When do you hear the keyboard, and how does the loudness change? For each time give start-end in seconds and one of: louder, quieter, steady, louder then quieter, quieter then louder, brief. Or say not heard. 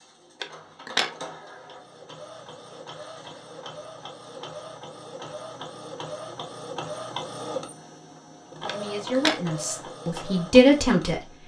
not heard.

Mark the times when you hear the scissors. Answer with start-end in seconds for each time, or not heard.
0.4-1.1, 8.7-9.4.